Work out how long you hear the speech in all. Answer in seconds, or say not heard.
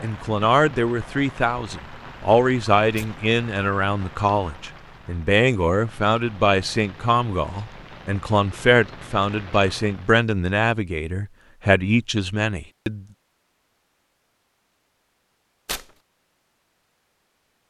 13 s.